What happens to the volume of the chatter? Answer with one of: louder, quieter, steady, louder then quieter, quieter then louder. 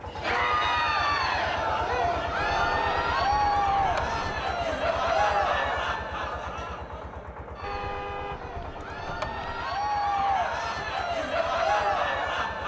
quieter then louder.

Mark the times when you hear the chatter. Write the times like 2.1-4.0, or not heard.
0.1-12.6.